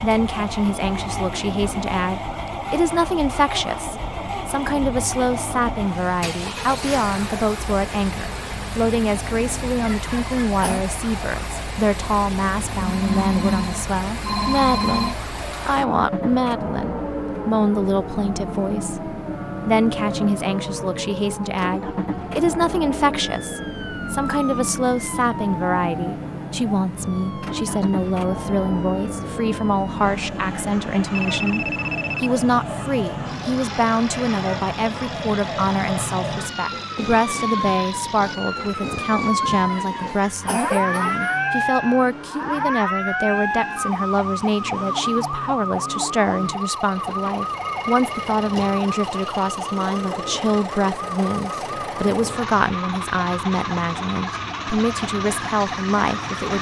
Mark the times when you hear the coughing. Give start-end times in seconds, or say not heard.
9.8-10.8, 39.7-41.4.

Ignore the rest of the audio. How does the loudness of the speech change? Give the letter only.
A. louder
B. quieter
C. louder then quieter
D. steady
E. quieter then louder
D.